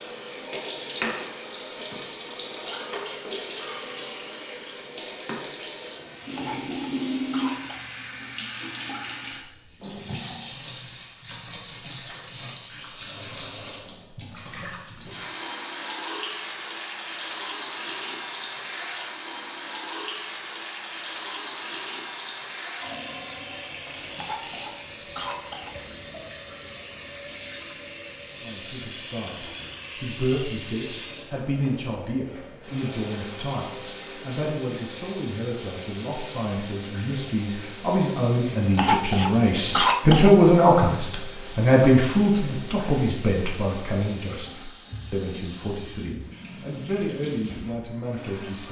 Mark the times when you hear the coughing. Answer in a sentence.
The coughing can be heard from 6.3 to 7.9 s, from 24.1 to 25.8 s and from 38.7 to 40.4 s.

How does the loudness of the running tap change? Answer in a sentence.
The loudness of the running tap goes down.